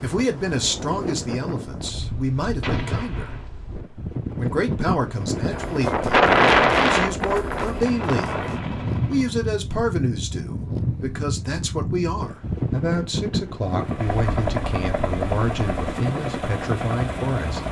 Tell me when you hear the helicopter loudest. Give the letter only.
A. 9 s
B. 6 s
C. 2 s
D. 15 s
D.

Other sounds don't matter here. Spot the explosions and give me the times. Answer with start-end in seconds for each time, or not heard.
2.6-3.5.